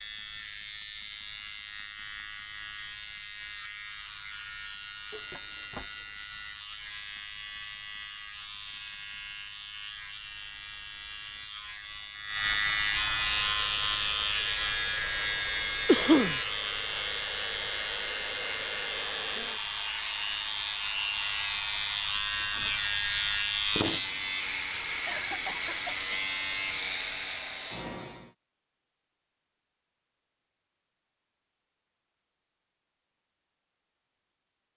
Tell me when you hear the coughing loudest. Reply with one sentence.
The loudest moment of the coughing is at 16 seconds.